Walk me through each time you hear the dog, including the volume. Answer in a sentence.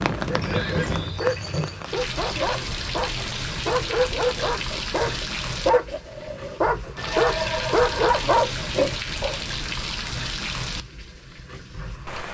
You can hear the dog from 0.2 to 9.4 s, getting louder.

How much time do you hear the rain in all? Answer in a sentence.
You can hear the rain for 12 seconds altogether.